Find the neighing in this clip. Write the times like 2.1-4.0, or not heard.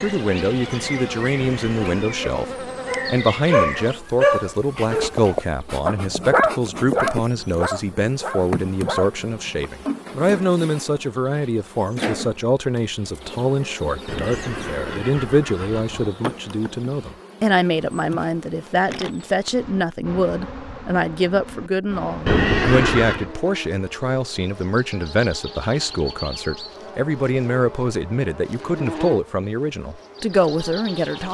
1.4-2.2, 14.1-16.1, 22.2-23.2.